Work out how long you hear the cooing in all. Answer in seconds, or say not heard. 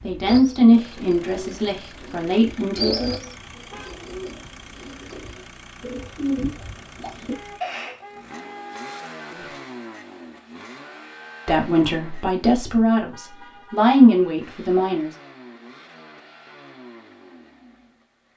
8 s.